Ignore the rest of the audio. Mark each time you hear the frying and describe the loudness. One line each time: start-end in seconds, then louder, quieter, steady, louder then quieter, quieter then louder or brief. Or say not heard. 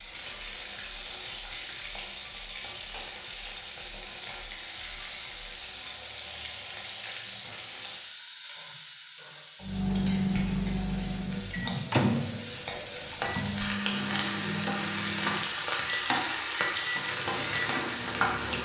0.0-18.5 louder.